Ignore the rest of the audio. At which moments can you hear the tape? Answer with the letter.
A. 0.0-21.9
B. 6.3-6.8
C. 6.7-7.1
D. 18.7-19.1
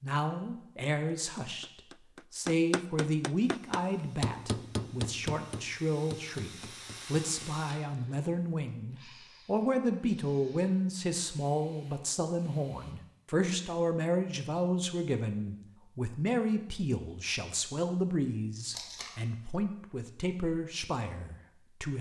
D.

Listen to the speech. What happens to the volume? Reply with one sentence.
The volume of the speech stays about the same.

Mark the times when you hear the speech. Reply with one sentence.
You can hear the speech from 0.0 to 21.9 s.